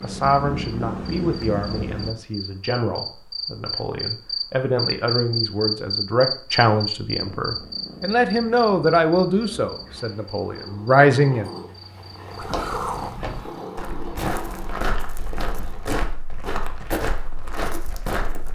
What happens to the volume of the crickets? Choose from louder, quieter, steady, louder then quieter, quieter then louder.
louder then quieter.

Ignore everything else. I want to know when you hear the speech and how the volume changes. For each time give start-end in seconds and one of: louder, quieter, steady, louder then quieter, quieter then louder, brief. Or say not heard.
0.0-11.5 louder.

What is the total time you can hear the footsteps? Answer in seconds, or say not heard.
6 s.